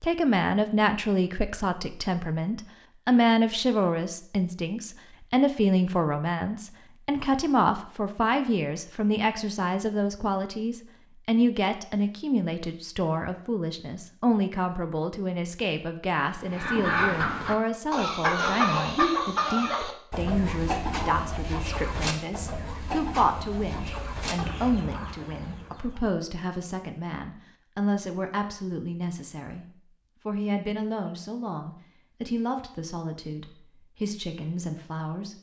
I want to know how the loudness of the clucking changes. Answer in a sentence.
The volume of the clucking goes down.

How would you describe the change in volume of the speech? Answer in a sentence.
The volume of the speech goes down.